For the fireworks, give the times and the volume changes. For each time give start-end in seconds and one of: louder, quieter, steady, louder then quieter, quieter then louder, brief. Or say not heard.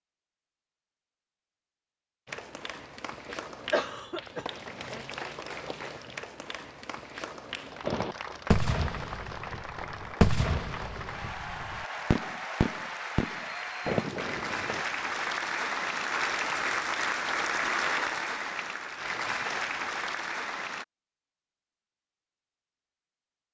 7.8-14.8 quieter then louder.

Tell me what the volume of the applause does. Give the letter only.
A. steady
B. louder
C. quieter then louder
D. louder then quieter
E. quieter
B.